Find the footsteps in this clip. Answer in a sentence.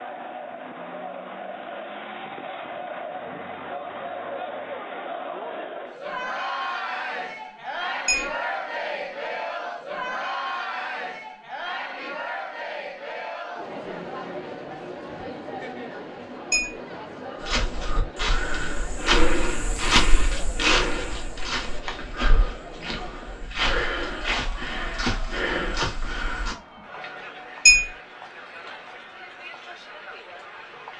You can hear the footsteps from 17.4 to 26.6 s.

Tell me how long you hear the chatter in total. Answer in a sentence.
You can hear the chatter for 31 seconds altogether.